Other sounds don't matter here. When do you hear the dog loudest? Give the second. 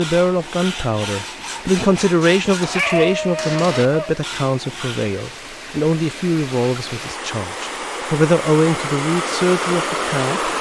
3 s.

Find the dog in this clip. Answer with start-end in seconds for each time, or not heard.
2.7-4.2.